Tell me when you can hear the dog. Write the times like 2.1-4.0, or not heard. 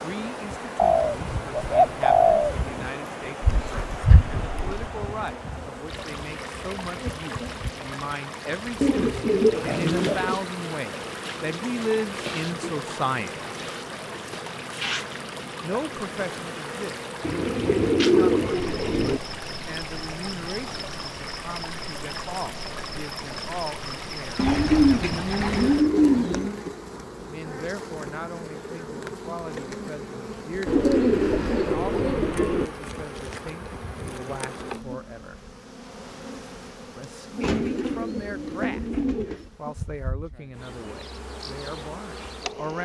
3.4-4.8.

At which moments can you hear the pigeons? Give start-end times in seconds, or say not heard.
0.8-2.5, 8.8-10.4, 17.2-19.2, 24.4-26.6, 30.6-32.6, 37.4-39.5.